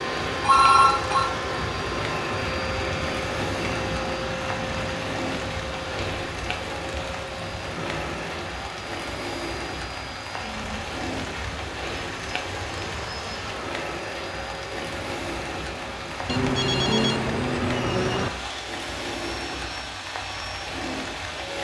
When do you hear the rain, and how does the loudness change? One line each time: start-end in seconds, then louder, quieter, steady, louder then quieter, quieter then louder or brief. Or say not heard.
0.0-21.5 steady.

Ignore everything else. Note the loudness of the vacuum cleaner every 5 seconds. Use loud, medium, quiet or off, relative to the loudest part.
loud, medium, medium, medium, medium.